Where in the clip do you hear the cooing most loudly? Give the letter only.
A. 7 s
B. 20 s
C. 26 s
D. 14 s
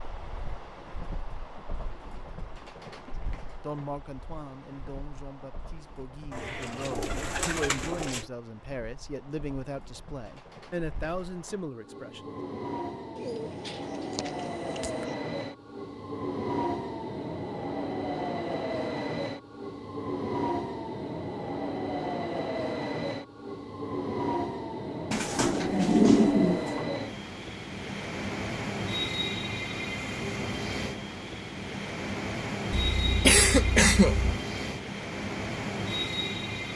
C.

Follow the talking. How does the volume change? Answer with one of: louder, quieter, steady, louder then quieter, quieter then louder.
louder.